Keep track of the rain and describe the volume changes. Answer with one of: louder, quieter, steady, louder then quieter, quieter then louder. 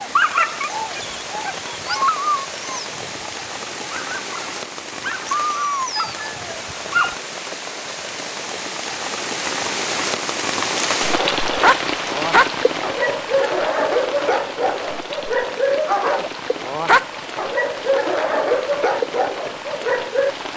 louder then quieter.